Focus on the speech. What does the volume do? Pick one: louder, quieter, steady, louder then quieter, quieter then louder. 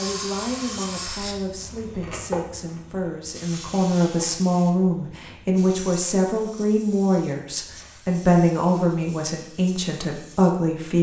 louder.